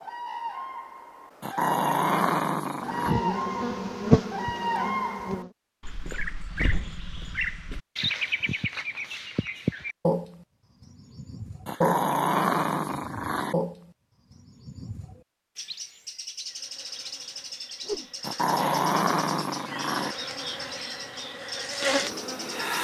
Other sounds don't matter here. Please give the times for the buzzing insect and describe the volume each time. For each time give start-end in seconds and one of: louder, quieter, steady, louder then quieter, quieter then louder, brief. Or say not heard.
2.8-5.5 brief
16.4-22.8 louder.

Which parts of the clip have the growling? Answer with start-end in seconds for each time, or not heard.
1.4-3.1, 11.7-13.6, 18.2-20.1.